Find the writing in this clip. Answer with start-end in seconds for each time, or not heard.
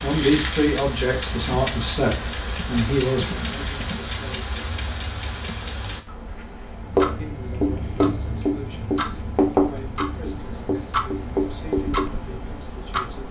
6.8-12.8.